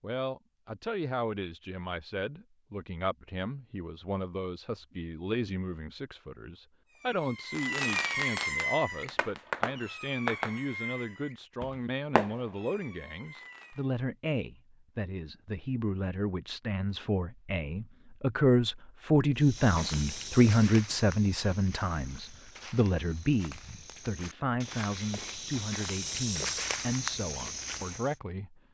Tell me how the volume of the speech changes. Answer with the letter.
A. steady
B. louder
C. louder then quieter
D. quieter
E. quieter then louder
C.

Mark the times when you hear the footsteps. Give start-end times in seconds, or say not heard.
19.4-28.1.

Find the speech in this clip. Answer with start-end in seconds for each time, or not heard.
0.0-28.6.